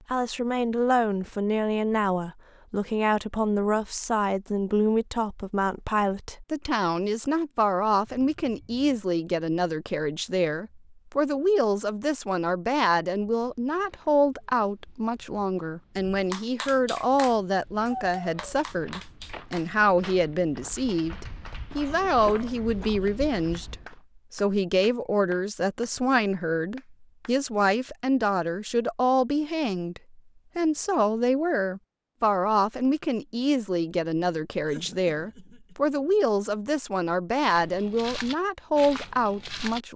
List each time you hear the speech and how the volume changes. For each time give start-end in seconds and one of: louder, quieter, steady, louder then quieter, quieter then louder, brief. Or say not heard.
0.1-39.9 steady.